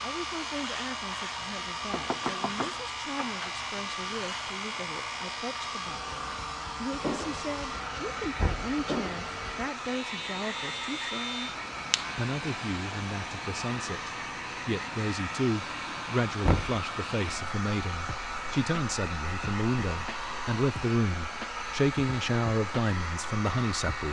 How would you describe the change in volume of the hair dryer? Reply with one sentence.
The loudness of the hair dryer stays about the same.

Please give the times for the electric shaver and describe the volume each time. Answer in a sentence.
You can hear the electric shaver from 0.0 to 24.0 s, at a steady volume.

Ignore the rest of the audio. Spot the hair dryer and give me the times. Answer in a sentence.
You can hear the hair dryer from 0.0 to 24.0 s.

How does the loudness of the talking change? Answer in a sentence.
The loudness of the talking goes up.